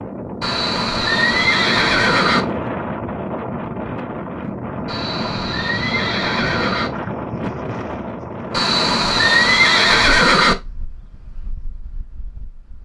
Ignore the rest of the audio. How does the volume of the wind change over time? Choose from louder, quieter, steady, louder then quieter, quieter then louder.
quieter.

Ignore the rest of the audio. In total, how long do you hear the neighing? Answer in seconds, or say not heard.
6 s.